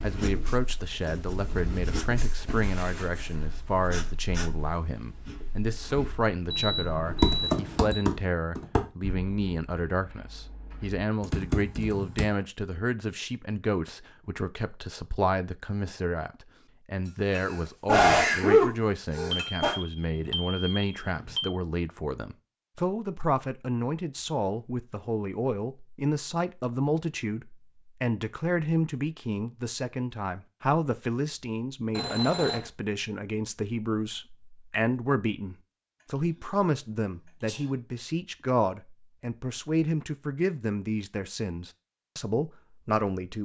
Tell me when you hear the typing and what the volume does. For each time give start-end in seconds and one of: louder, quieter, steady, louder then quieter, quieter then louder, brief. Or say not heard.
7.0-12.2 quieter then louder.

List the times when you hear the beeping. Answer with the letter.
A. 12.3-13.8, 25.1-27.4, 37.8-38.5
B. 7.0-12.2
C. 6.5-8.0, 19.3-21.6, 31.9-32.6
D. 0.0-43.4
C.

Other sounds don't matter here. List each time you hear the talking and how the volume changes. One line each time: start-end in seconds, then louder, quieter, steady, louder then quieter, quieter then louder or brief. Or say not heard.
0.0-43.4 steady.